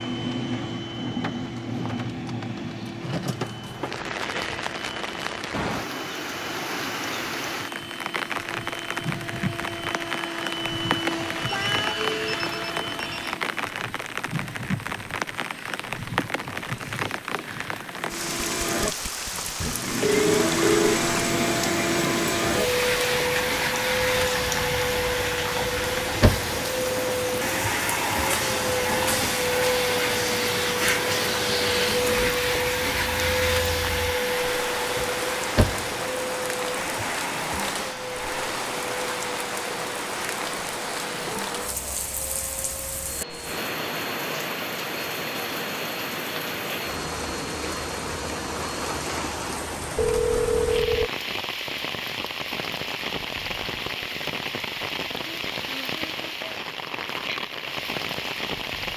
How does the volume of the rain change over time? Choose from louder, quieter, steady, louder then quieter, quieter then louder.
steady.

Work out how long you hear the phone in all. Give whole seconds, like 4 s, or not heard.
4 s.